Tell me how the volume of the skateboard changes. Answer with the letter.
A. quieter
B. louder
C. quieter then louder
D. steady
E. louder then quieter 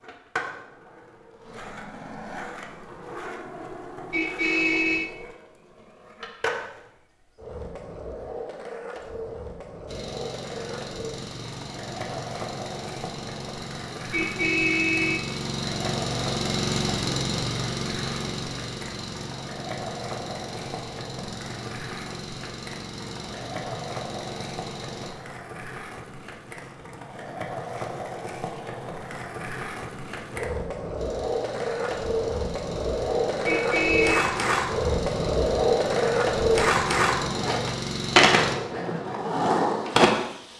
B.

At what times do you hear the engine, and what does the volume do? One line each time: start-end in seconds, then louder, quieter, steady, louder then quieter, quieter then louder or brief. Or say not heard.
9.8-25.1 louder then quieter
30.9-38.5 louder.